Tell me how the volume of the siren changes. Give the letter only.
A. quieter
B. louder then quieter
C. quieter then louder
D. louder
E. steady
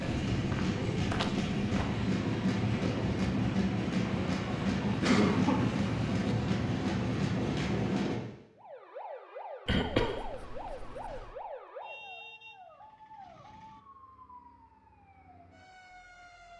A.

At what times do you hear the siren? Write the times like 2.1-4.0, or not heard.
8.6-16.5.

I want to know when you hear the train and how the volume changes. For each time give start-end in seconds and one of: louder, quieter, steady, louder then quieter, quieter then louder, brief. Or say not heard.
0.0-8.2 steady.